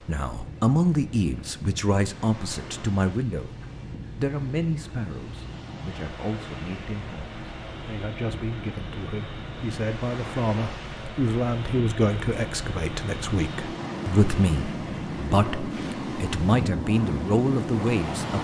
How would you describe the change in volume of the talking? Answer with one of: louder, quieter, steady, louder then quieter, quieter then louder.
quieter then louder.